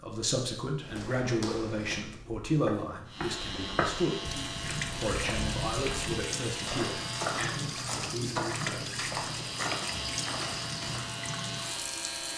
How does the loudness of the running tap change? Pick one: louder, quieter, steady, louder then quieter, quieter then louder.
steady.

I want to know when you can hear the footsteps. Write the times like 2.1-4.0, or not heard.
0.8-11.1.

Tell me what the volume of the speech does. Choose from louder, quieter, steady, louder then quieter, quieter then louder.
quieter.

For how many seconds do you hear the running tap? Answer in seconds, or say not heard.
8 s.